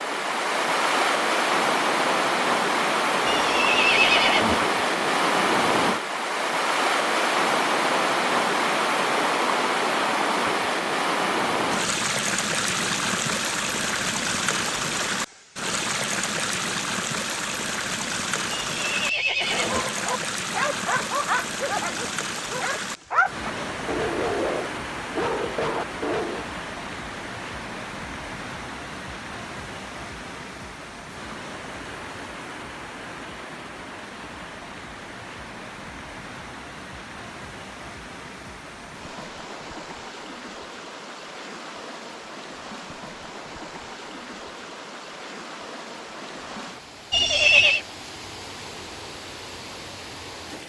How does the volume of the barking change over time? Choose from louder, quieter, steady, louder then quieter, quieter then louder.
steady.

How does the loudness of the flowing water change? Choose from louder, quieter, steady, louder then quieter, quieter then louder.
quieter.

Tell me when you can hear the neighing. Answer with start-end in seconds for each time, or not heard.
3.2-4.6, 18.5-19.9, 47.1-47.8.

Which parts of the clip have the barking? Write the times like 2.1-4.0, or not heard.
19.5-26.4.